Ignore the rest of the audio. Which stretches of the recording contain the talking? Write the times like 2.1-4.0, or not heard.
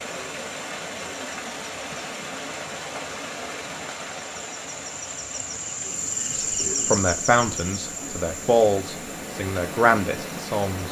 6.3-10.8.